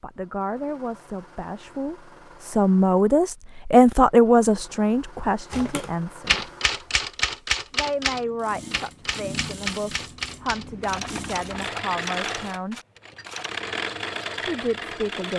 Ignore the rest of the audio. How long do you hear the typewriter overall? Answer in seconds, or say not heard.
8 s.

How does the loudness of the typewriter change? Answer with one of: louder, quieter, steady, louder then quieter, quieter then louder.
quieter.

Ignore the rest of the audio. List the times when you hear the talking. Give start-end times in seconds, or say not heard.
0.0-6.5, 7.7-12.8, 14.4-15.3.